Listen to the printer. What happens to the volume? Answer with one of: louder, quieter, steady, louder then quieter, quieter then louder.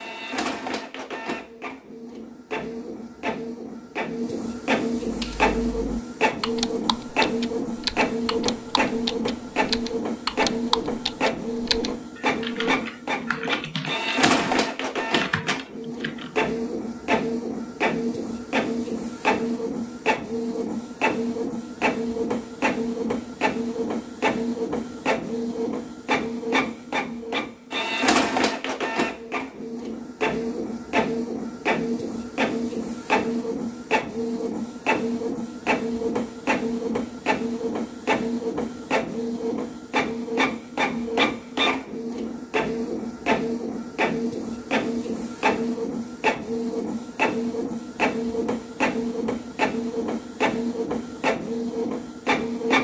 steady.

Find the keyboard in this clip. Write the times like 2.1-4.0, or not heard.
5.0-16.4.